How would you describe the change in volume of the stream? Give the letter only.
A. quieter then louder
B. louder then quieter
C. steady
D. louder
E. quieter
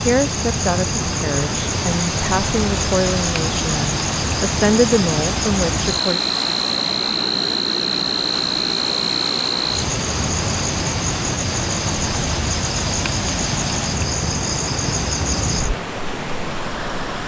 C.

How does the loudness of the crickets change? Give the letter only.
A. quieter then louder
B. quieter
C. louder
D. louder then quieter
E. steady
E.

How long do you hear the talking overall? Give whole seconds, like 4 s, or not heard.
6 s.